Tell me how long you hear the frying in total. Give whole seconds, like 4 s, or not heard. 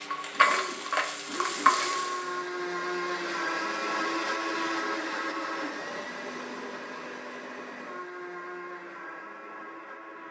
2 s.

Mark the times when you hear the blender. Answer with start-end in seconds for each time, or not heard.
0.1-10.2.